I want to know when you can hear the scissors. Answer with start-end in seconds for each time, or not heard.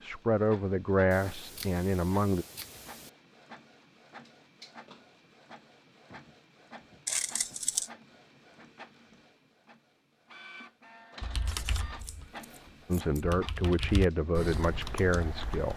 1.1-3.1, 7.0-7.9, 11.4-13.2.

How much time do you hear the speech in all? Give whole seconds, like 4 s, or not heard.
5 s.